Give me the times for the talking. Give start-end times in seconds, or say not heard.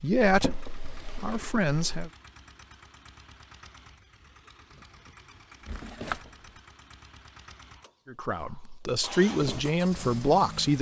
0.0-2.1, 8.1-10.7.